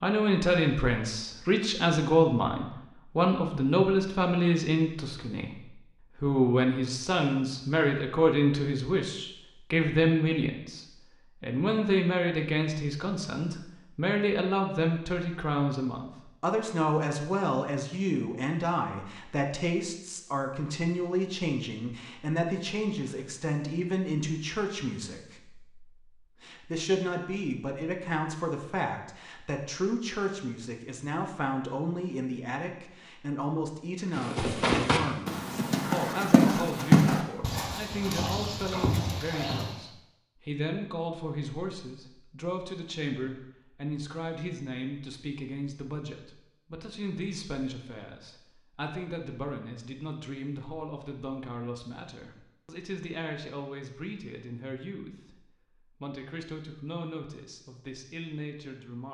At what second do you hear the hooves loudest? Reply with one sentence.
The volume of the hooves peaks at 37 seconds.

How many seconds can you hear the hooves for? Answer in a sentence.
The hooves can be heard for 6 seconds in total.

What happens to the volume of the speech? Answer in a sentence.
The loudness of the speech goes down.